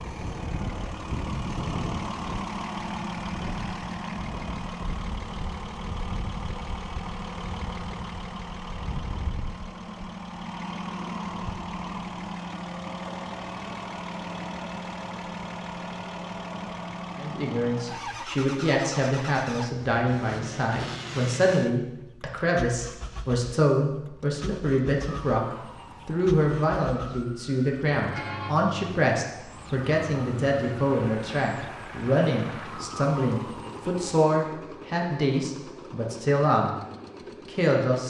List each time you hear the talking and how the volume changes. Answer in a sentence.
The talking can be heard from 17.1 to 36.8 s, at a steady volume; and briefly from 37.5 to 38.0 s.